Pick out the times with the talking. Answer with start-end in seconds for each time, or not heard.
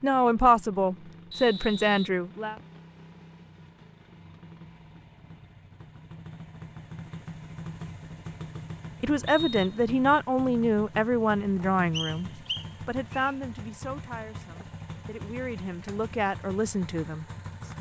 0.0-2.5, 9.0-17.2.